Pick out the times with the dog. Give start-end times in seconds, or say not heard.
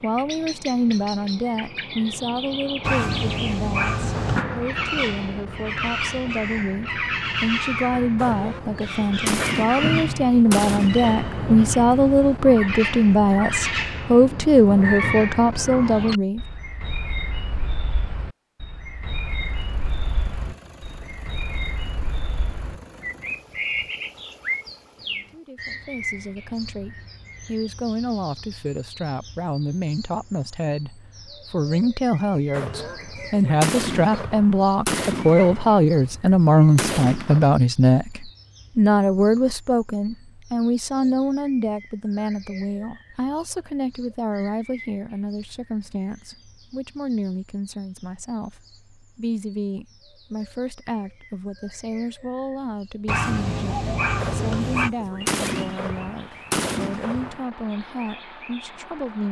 2.8-4.5, 53.0-54.9.